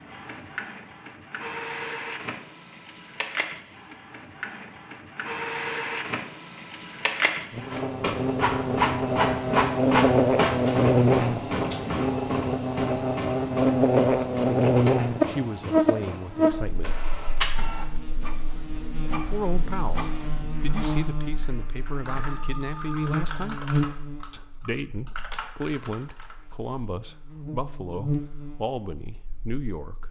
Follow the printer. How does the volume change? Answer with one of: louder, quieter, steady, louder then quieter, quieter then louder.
louder then quieter.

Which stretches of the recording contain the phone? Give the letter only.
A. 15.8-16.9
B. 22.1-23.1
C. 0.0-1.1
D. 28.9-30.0
B.